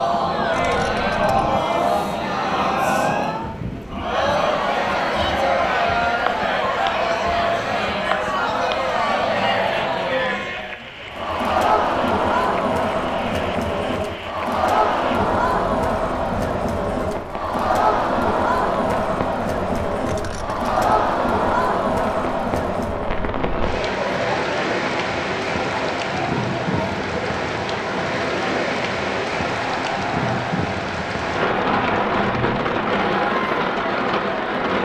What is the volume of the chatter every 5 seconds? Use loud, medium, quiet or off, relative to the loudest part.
loud, loud, loud, loud, loud, medium, medium.